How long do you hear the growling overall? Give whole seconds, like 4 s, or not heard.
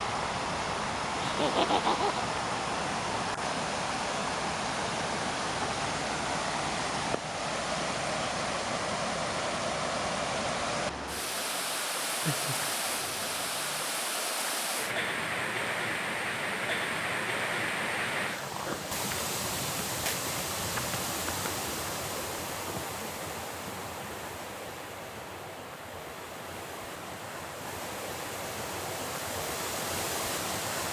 2 s.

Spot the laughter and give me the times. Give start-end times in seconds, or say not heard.
1.2-2.2.